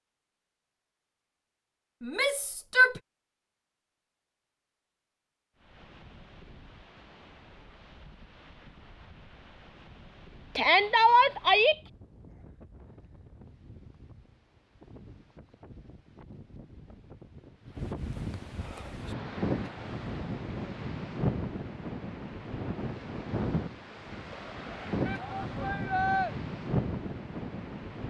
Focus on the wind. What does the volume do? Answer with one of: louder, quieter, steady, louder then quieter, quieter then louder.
louder.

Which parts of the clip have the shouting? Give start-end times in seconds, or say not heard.
2.0-3.0, 10.6-11.8, 25.1-26.3.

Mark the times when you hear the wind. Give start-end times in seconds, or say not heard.
5.5-28.0.